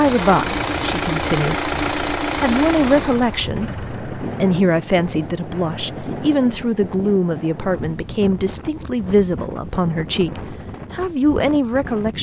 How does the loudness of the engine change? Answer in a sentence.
The volume of the engine goes down.